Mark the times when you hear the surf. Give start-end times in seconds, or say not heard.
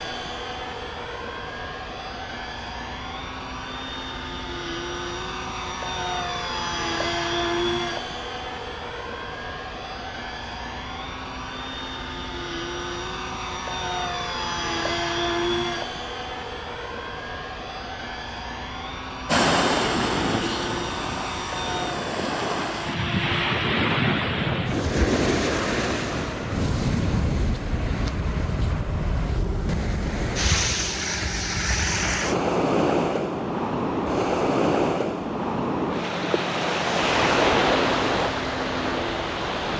19.2-39.7.